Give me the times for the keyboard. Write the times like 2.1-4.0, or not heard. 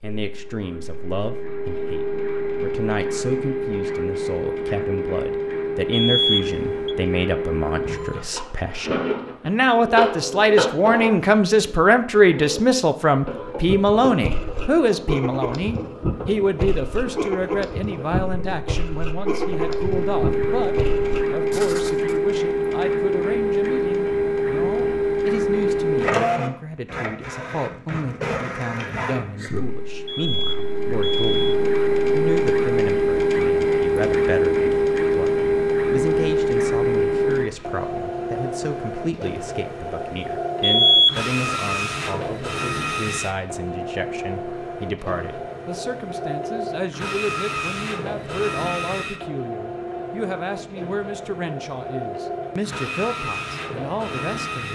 not heard.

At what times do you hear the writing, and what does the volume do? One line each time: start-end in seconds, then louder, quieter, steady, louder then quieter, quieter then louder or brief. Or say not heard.
13.7-22.1 steady.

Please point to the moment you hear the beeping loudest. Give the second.
41 s.